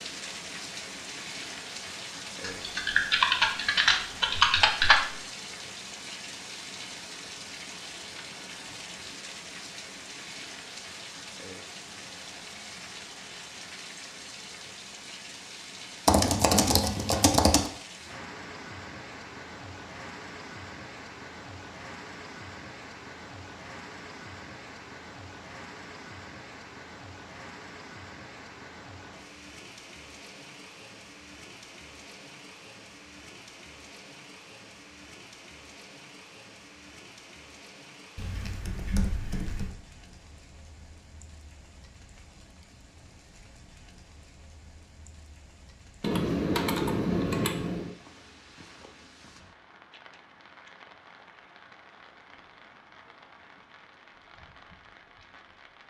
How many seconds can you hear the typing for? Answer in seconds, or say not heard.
8 s.